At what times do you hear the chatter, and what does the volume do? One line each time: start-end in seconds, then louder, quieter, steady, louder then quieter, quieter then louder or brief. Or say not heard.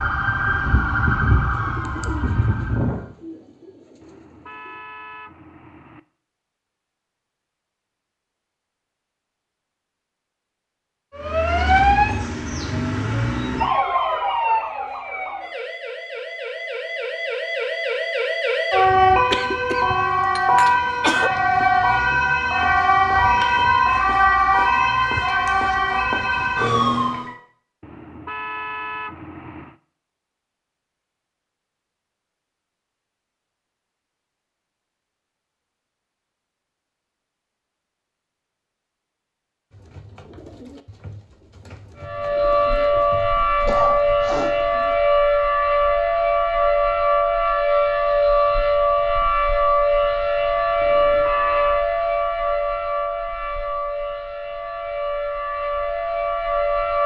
not heard.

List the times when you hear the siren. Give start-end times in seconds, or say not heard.
0.0-3.1, 11.1-27.4, 42.0-57.0.